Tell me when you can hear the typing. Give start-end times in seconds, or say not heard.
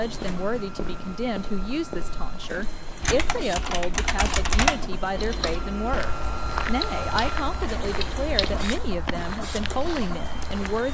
3.0-8.7.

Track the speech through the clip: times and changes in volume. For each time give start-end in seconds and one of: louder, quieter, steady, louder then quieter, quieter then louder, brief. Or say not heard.
0.0-10.8 steady.